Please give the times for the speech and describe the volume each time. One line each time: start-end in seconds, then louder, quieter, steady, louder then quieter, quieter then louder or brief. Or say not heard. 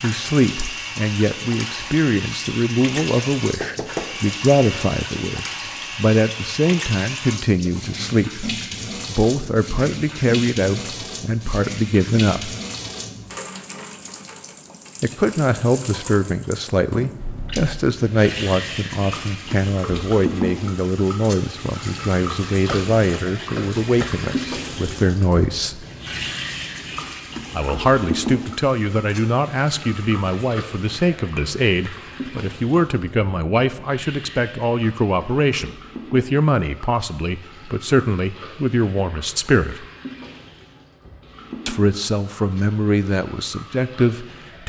0.0-12.6 steady
15.0-25.9 steady
27.5-39.9 steady
41.6-44.6 brief.